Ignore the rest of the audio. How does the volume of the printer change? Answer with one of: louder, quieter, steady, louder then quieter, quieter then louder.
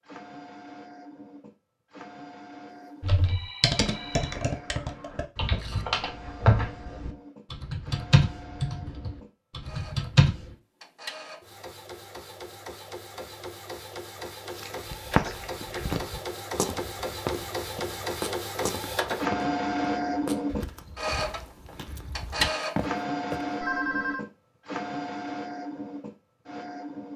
louder.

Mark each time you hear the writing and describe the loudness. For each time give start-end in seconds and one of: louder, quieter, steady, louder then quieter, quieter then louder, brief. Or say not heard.
not heard.